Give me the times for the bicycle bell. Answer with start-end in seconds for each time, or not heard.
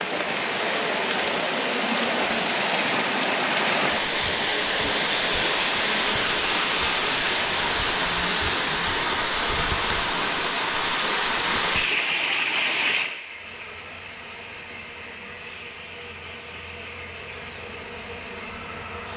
not heard.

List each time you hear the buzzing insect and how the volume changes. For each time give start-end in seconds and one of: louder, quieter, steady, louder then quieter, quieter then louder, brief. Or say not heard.
13.2-19.1 louder.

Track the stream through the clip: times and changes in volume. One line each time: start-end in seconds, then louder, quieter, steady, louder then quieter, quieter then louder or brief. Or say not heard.
0.0-19.1 quieter.